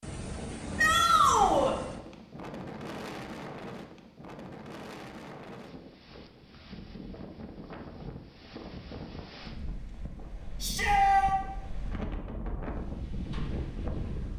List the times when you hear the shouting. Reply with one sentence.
The shouting can be heard from 0.8 to 1.8 s and from 10.6 to 11.3 s.